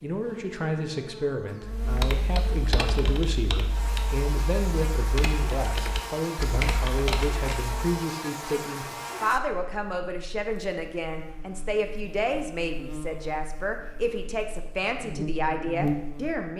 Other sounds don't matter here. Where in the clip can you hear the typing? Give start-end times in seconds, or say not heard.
1.6-7.8.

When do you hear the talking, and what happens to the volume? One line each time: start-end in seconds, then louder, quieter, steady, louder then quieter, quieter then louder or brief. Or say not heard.
0.0-16.5 steady.